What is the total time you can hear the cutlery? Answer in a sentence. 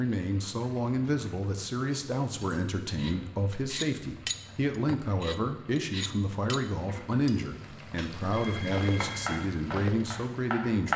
You can hear the cutlery for 8 seconds altogether.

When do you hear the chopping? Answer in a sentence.
The chopping can be heard from 8.9 to 10.9 s.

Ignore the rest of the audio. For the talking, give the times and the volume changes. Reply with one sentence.
The talking can be heard from 0.0 to 10.9 s, at a steady volume.